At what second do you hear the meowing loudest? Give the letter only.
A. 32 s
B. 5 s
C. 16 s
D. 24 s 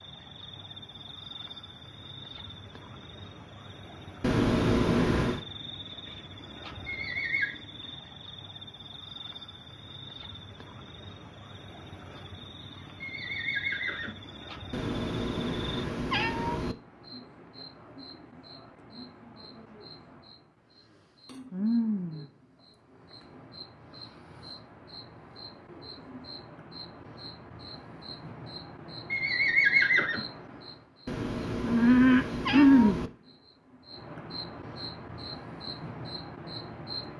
B.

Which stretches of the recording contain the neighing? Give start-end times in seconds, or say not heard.
6.8-7.5, 13.0-14.2, 29.1-30.2.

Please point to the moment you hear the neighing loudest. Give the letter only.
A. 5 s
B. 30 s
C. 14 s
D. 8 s
B.